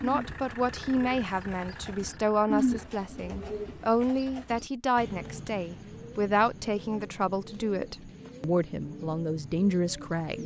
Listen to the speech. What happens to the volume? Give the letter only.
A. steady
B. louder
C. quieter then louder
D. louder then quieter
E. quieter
A.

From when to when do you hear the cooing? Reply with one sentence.
You can hear the cooing from 0.0 to 10.4 s.